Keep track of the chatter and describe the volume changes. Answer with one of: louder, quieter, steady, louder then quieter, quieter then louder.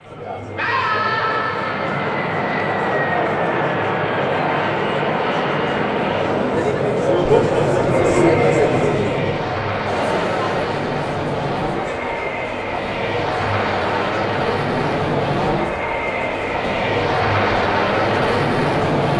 louder then quieter.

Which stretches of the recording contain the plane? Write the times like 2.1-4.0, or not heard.
0.0-19.1.